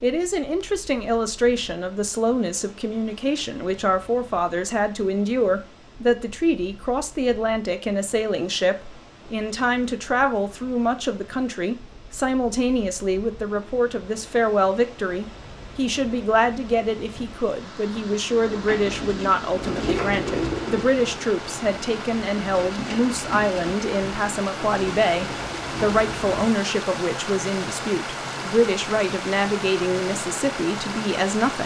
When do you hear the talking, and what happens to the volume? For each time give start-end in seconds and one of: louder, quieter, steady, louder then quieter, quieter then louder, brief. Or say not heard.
0.0-31.6 steady.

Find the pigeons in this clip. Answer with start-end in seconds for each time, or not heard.
18.3-26.5.